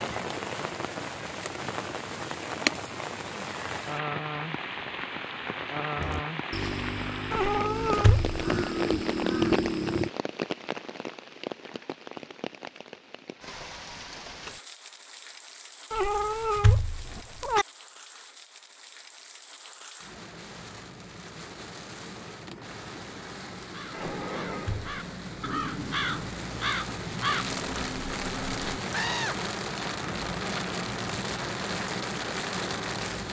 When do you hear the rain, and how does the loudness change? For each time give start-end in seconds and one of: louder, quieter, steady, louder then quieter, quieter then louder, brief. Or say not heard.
0.0-33.2 quieter then louder.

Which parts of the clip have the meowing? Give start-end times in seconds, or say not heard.
7.3-8.3, 15.9-17.6, 23.9-24.9.